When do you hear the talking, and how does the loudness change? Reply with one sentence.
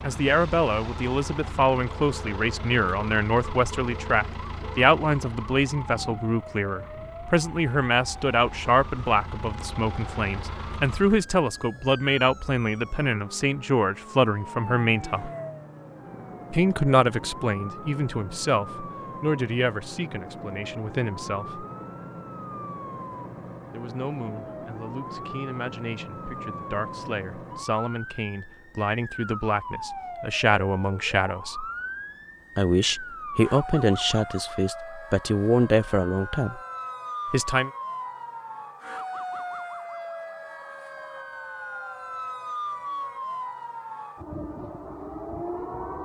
You can hear the talking from 0.0 to 15.3 s, at a steady volume; from 16.5 to 21.6 s, getting quieter; from 23.7 to 31.6 s, getting louder; from 32.5 to 36.6 s, getting quieter then louder; and briefly from 37.3 to 37.7 s.